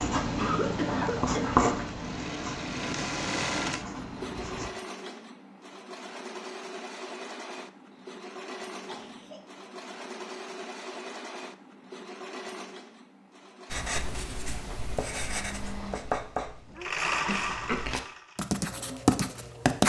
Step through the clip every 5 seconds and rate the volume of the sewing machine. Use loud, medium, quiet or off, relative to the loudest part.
loud, medium, medium, loud.